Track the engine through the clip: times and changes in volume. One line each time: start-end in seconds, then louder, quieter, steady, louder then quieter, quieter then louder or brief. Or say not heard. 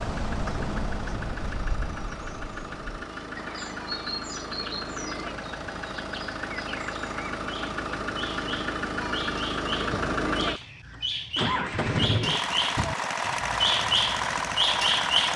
0.0-15.3 louder.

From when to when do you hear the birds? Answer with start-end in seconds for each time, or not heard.
0.0-15.3.